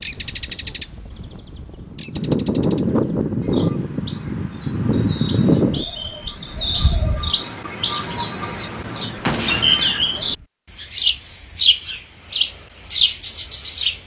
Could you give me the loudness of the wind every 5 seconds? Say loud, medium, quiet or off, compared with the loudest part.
loud, loud, off.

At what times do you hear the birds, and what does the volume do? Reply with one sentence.
The birds can be heard briefly from 0.0 to 0.9 s; and from 1.9 to 14.0 s, getting louder.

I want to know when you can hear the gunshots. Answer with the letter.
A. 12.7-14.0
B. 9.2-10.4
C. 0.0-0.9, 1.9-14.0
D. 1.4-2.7
B.